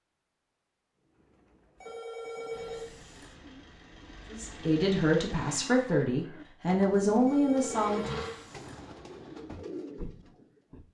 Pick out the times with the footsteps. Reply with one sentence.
You can hear the footsteps from 9.4 to 10.8 s.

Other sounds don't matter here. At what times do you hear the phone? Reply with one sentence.
The phone can be heard from 1.8 to 3.4 s and from 7.2 to 8.8 s.